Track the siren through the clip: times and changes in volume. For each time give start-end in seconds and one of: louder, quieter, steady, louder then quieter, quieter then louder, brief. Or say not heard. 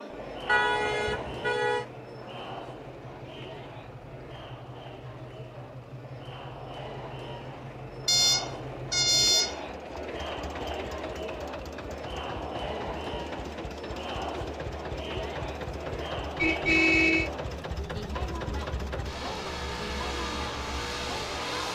not heard.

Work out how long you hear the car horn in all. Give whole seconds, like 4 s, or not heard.
4 s.